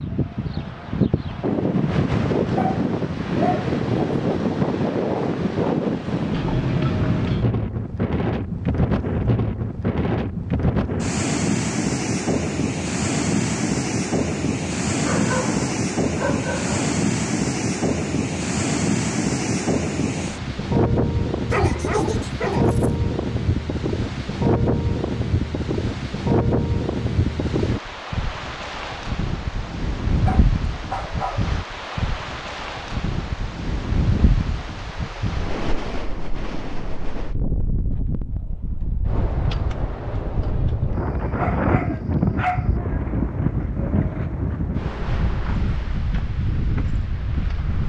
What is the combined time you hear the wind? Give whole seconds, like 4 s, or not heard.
48 s.